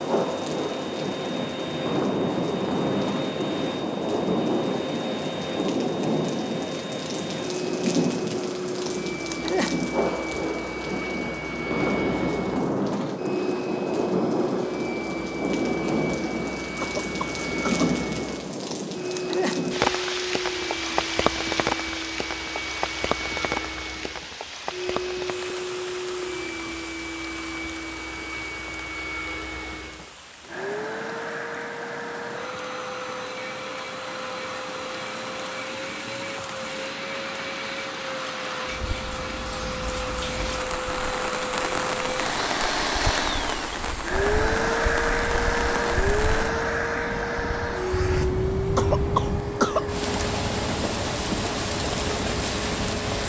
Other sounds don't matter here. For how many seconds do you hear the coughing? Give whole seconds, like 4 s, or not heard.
2 s.